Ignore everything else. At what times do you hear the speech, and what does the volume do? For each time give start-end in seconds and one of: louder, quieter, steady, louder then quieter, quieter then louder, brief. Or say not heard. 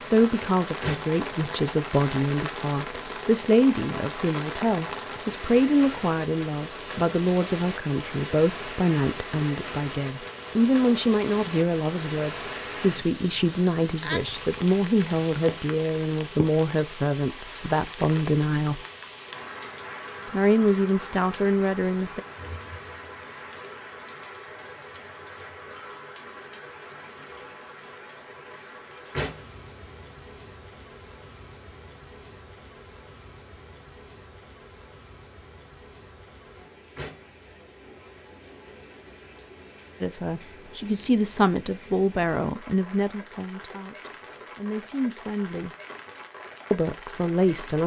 0.0-18.9 steady
20.3-22.2 brief
40.0-45.7 quieter then louder
46.7-47.8 brief.